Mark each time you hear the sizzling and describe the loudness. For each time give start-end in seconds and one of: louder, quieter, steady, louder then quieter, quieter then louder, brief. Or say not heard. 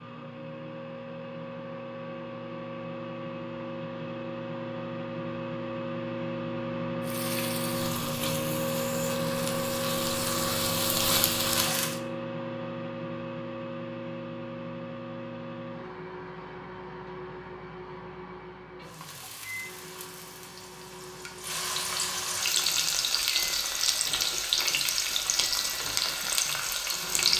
7.0-12.0 louder
18.8-27.3 louder.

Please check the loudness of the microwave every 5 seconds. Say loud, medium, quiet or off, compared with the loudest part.
medium, loud, loud, medium, quiet, quiet.